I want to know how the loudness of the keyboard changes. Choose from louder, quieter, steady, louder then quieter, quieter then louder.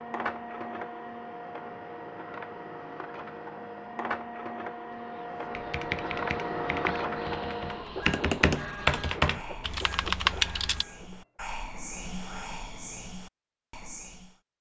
louder.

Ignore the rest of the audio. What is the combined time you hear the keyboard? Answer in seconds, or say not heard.
5 s.